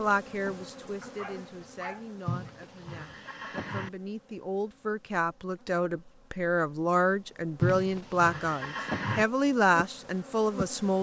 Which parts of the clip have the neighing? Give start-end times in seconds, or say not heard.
2.2-3.9, 7.6-9.2.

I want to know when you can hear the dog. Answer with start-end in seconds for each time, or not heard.
1.0-2.5.